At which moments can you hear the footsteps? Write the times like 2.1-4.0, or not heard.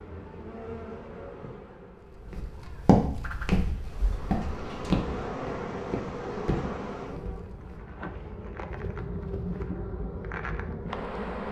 2.0-7.8.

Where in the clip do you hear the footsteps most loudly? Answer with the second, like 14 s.
3 s.